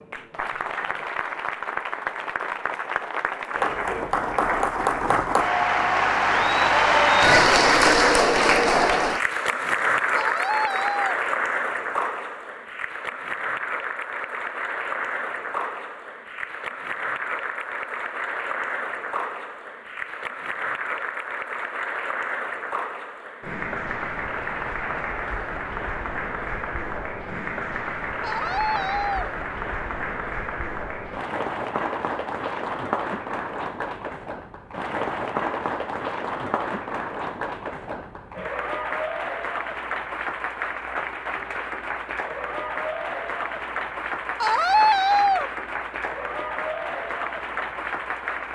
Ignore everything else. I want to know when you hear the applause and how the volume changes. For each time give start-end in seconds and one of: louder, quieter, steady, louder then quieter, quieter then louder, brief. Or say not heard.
0.0-48.4 quieter.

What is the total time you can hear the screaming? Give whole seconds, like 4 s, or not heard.
3 s.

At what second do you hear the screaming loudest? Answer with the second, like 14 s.
45 s.